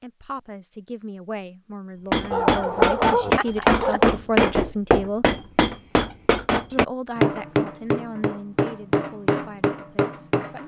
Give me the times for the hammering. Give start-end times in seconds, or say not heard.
2.1-10.6.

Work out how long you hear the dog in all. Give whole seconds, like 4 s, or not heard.
2 s.